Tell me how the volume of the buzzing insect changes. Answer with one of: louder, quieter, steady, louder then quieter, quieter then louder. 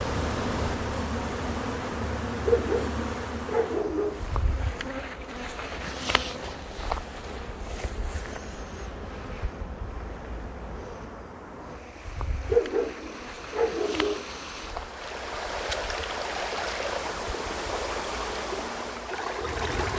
quieter.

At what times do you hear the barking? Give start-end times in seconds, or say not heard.
2.5-4.2, 12.4-14.2.